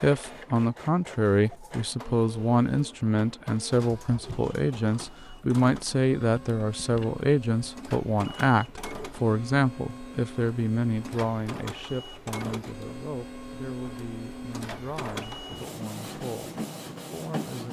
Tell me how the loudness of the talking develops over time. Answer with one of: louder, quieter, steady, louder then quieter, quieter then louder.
quieter.